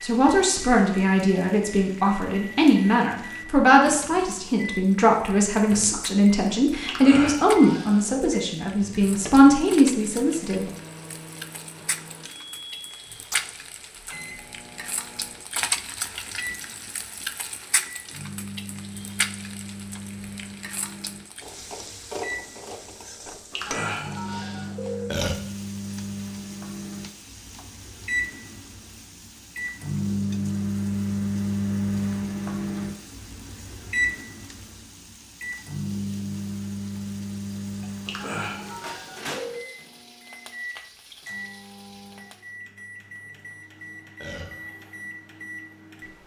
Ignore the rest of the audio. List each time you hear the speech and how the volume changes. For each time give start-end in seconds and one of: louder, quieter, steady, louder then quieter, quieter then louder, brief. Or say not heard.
0.0-10.7 steady.